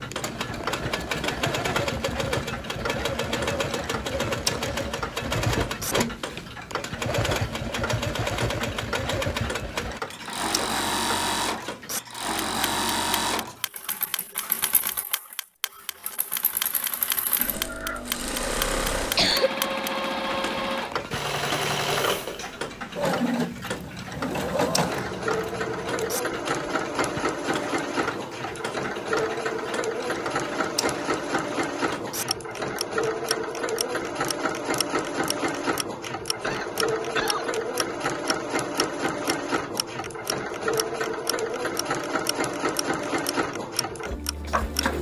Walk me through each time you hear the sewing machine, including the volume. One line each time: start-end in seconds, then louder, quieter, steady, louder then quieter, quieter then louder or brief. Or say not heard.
0.0-44.9 steady.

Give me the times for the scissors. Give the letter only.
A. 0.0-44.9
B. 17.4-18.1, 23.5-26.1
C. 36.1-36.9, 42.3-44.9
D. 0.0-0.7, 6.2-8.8
B.